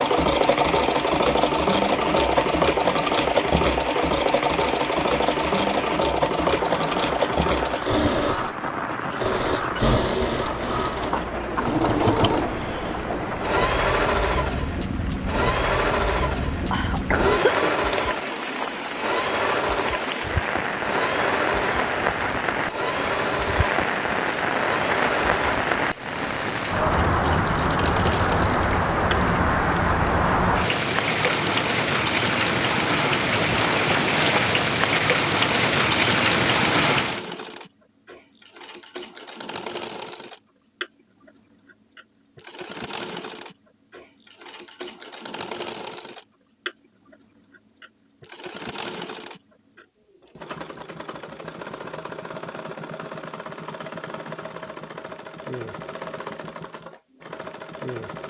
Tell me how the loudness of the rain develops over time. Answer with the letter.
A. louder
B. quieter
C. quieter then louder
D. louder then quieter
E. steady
A.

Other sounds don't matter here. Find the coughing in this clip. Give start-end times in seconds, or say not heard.
16.7-17.8.